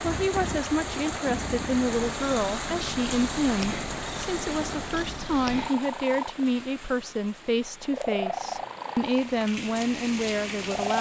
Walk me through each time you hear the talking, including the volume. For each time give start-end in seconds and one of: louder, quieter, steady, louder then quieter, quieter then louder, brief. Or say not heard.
0.0-10.9 steady.